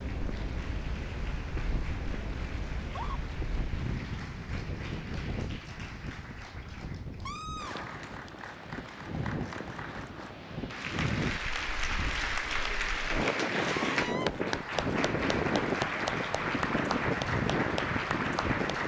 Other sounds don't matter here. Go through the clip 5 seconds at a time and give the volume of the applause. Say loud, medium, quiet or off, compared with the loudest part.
quiet, quiet, loud, loud.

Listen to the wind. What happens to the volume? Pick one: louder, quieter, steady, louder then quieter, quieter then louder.
louder.